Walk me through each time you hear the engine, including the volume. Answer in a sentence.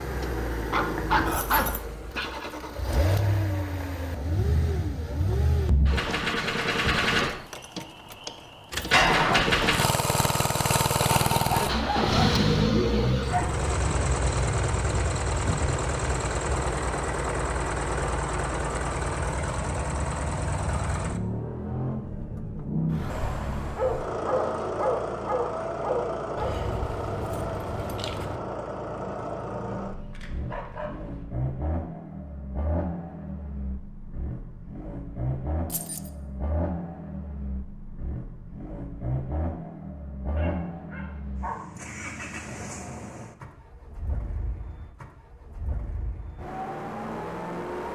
The engine can be heard from 0.0 to 47.9 s, getting quieter.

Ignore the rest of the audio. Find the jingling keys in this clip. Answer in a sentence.
You can hear the jingling keys from 1.2 to 1.9 s, from 26.4 to 28.4 s and from 35.6 to 36.1 s.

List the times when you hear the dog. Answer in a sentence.
The dog can be heard from 0.7 to 2.5 s, from 11.7 to 13.7 s, from 23.8 to 26.6 s, from 29.8 to 31.2 s and from 40.4 to 41.6 s.